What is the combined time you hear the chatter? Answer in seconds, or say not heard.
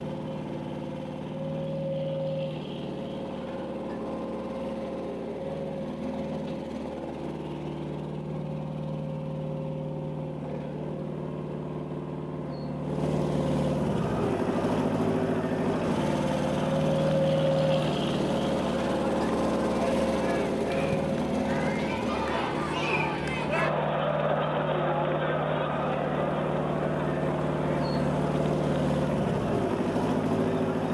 17 s.